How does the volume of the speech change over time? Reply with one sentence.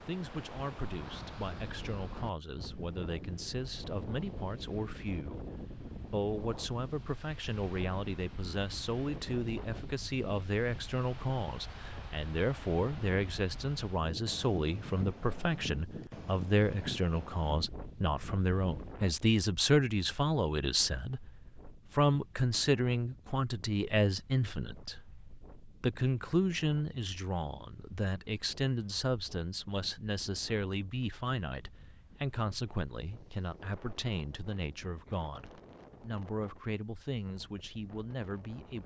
The loudness of the speech goes up, then down.